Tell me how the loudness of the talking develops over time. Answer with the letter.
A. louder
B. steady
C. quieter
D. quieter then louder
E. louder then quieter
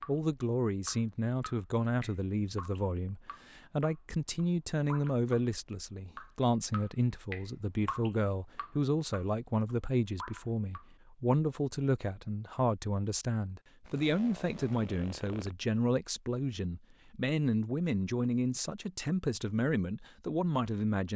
B.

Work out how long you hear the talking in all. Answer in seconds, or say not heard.
21 s.